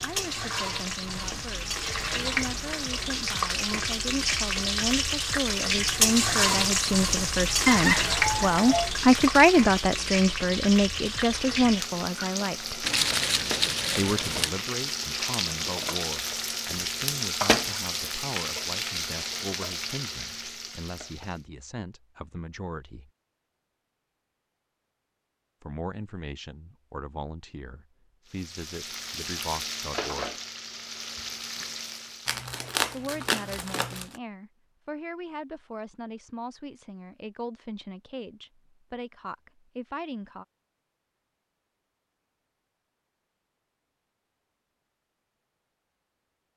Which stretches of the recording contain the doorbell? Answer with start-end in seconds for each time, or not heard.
7.7-8.9.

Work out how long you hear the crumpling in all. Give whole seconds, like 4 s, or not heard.
4 s.